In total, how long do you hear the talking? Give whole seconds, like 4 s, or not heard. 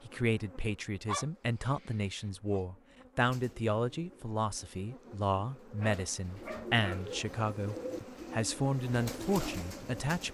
10 s.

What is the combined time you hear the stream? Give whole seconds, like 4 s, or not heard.
not heard.